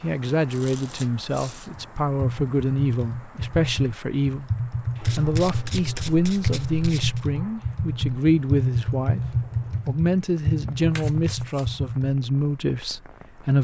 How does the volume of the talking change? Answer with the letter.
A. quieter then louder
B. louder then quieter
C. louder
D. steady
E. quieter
D.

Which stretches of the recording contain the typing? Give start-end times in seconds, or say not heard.
1.6-12.2.